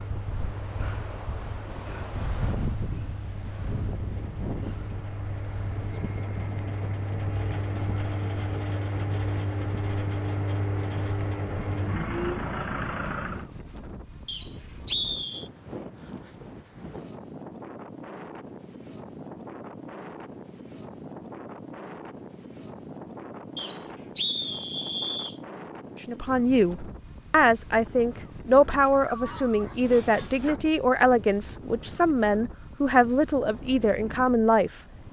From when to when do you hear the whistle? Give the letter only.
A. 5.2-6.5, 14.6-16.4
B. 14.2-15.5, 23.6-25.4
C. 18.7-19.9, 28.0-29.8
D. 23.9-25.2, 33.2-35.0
B.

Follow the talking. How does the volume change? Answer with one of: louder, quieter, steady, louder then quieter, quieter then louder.
steady.